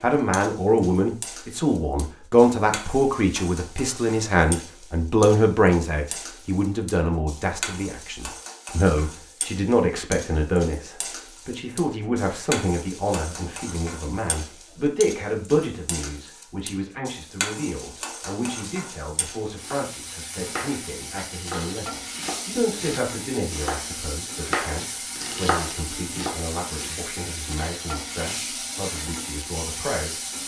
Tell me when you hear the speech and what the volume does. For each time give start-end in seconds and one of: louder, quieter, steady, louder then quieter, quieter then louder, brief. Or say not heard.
0.0-30.2 quieter.